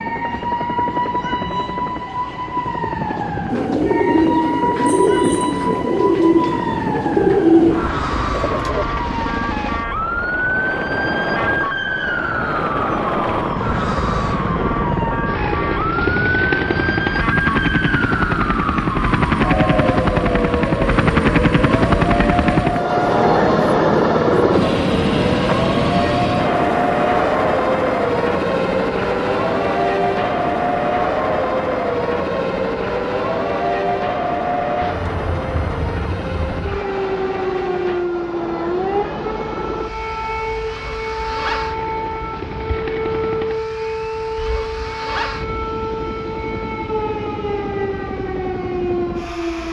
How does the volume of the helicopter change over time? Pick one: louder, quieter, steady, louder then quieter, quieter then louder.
louder then quieter.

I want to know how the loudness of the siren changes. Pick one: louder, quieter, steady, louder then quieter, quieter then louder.
steady.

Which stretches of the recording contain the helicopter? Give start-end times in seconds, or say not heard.
0.0-49.6.